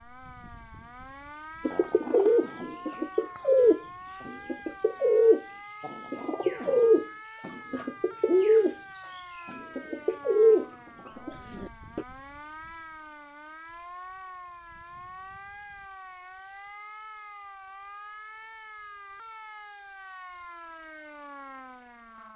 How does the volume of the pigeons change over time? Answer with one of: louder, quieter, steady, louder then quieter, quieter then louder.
steady.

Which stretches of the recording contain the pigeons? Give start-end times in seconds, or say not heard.
1.6-12.1.